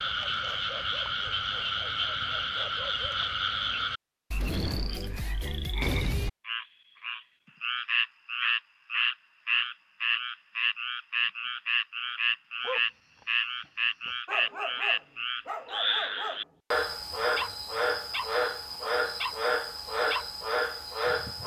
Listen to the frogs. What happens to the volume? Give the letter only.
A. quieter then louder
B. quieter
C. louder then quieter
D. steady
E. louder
D.